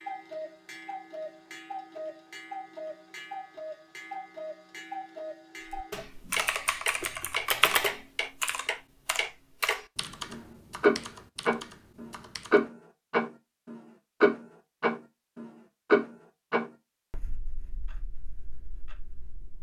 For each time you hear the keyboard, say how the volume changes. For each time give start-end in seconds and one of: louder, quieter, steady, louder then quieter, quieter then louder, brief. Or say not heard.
5.7-12.7 louder then quieter.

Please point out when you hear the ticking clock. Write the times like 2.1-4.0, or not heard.
0.0-19.5.